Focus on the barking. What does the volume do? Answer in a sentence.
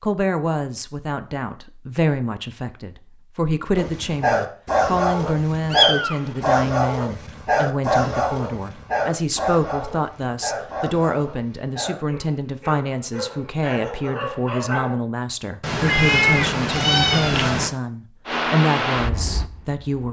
The volume of the barking goes down.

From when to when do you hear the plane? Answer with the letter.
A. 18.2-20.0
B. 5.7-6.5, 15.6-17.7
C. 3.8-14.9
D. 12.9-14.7
A.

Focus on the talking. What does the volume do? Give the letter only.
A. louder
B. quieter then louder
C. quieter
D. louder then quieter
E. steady
E.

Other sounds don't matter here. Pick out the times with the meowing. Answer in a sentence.
The meowing can be heard from 5.7 to 6.5 s and from 15.6 to 17.7 s.